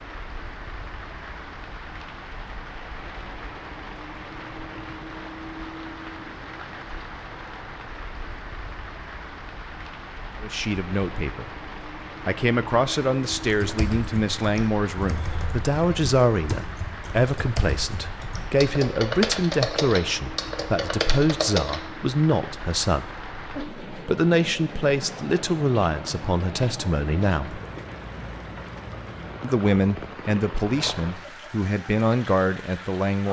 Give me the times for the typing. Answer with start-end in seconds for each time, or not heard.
13.4-21.8.